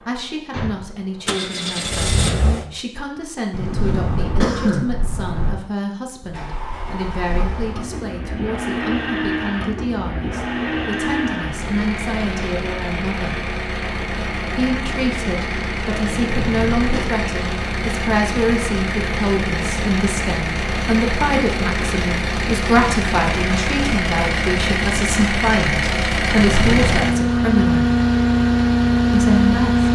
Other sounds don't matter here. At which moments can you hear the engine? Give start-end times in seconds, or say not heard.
0.0-2.6, 6.2-29.9.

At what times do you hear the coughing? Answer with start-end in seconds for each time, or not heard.
3.5-5.5, 16.1-17.1, 26.3-27.1.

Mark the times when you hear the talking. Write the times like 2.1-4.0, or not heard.
0.1-13.4, 14.6-27.9, 29.1-29.8.